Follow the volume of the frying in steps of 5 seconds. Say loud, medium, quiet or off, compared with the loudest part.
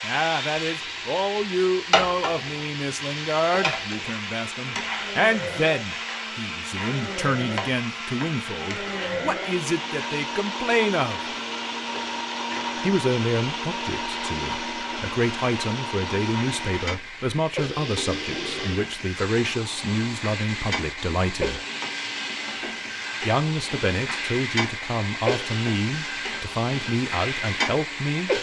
loud, medium, medium, medium, loud, loud.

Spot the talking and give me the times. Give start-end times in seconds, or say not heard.
0.0-11.2, 12.8-21.6, 23.2-28.3.